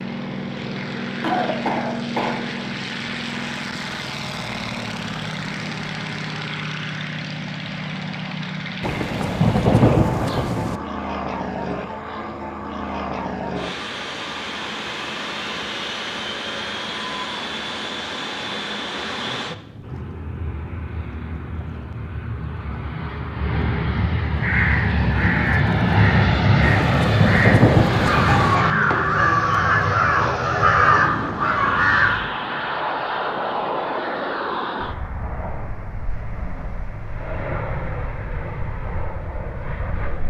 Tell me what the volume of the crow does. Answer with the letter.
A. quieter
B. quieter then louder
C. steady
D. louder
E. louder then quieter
D.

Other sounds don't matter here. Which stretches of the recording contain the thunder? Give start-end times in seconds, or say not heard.
8.8-10.8, 26.6-28.6.